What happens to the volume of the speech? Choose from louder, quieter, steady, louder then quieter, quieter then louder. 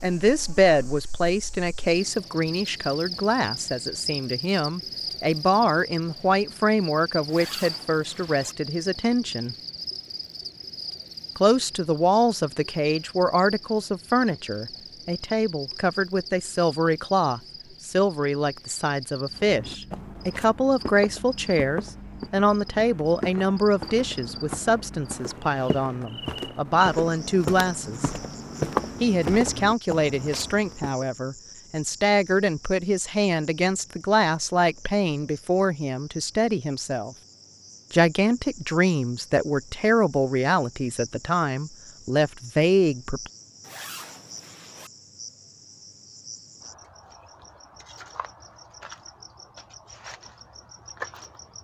steady.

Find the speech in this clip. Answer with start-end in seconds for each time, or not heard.
0.0-9.6, 11.3-28.1, 29.0-37.1, 37.9-43.3.